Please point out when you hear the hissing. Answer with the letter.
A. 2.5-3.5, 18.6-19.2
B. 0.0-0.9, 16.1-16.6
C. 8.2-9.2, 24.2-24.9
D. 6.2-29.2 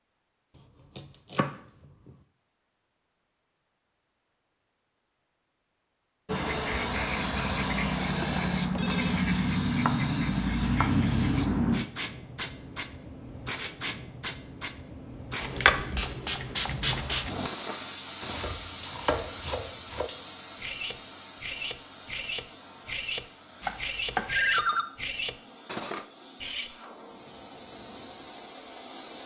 D.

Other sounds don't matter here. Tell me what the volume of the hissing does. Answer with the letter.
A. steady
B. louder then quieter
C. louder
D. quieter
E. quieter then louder
D.